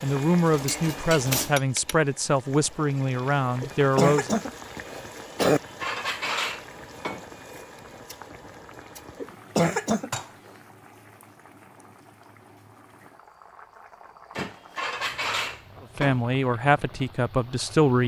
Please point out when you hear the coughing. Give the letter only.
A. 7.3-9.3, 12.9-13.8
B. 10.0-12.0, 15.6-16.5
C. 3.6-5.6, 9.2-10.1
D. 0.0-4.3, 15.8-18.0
C.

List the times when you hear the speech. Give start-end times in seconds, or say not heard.
0.0-4.3, 15.8-18.0.